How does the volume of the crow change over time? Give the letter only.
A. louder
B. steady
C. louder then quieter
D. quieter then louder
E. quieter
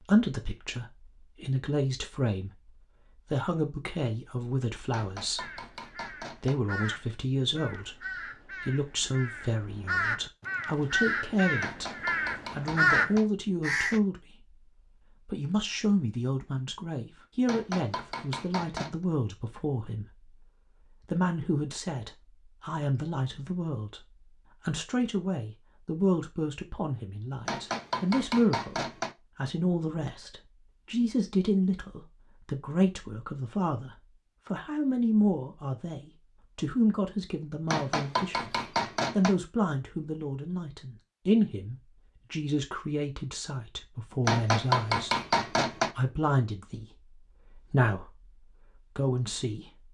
A.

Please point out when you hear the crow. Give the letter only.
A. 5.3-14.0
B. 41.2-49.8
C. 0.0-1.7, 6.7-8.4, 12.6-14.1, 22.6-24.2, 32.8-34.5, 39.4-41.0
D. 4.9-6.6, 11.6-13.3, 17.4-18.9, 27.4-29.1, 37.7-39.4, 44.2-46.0
A.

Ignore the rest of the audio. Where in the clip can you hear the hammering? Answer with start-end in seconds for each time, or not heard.
4.9-6.6, 11.6-13.3, 17.4-18.9, 27.4-29.1, 37.7-39.4, 44.2-46.0.